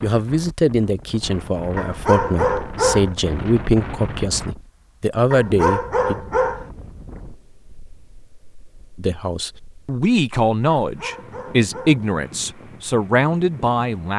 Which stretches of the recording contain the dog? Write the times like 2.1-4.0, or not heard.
1.8-3.1, 5.3-6.7, 10.7-12.1.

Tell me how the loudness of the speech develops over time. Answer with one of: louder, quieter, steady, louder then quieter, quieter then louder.
steady.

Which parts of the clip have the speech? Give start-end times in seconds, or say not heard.
0.0-6.2, 8.9-14.1.